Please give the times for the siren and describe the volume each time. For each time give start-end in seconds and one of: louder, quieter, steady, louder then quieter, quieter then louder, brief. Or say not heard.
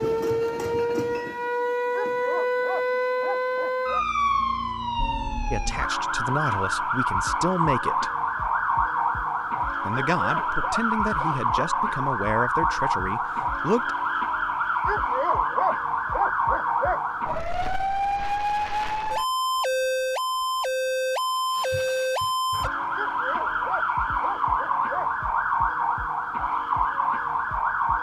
0.0-27.9 steady.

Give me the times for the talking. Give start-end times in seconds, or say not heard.
5.5-8.1, 9.8-13.9.